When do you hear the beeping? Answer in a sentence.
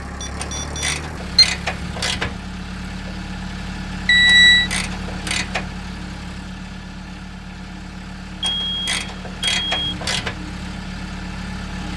The beeping can be heard from 0.2 to 1.4 s, from 4.0 to 4.7 s and from 8.4 to 9.9 s.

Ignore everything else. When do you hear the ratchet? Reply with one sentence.
You can hear the ratchet from 0.3 to 2.4 s, from 4.2 to 5.8 s and from 8.4 to 10.4 s.